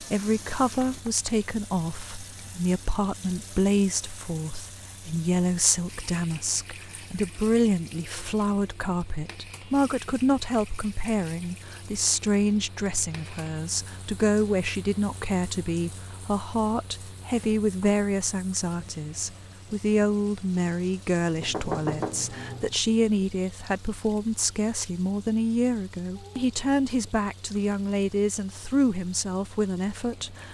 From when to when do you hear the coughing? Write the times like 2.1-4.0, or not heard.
not heard.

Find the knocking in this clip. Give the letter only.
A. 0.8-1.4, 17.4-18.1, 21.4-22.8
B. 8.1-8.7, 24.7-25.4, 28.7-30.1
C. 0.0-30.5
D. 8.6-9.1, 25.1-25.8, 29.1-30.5
A.